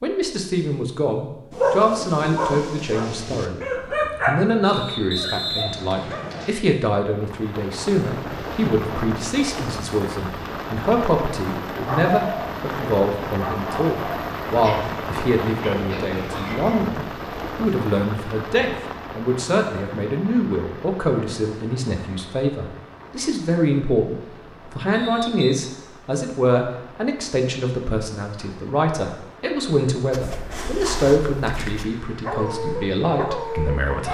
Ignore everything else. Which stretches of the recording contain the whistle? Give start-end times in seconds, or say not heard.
4.7-6.5, 24.9-25.6.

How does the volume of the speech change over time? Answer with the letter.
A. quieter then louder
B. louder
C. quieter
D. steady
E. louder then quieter
D.